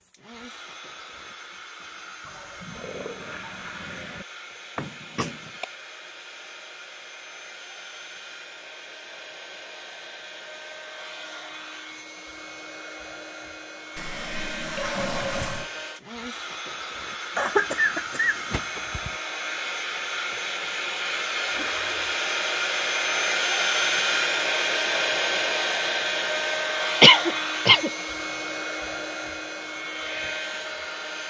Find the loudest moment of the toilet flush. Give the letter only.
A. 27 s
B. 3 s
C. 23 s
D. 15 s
D.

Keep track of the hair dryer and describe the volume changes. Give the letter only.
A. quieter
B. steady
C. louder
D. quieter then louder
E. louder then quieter
C.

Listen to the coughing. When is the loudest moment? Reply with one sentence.
The volume of the coughing peaks at 27 seconds.